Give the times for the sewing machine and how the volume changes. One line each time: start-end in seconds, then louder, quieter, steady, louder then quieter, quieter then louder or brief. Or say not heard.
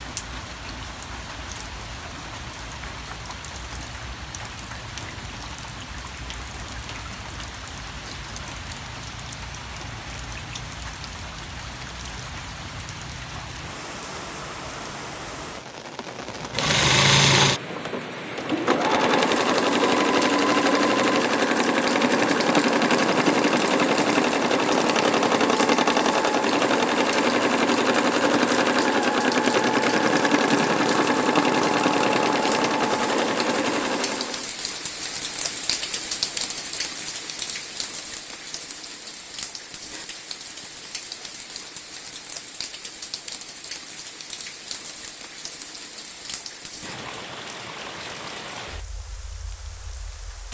16.4-34.5 steady.